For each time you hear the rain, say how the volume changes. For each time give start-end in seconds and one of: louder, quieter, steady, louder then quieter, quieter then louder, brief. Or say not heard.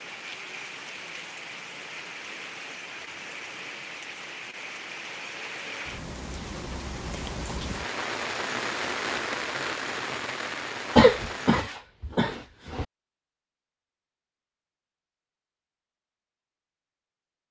0.0-11.7 louder.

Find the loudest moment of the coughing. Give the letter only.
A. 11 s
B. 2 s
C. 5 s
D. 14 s
A.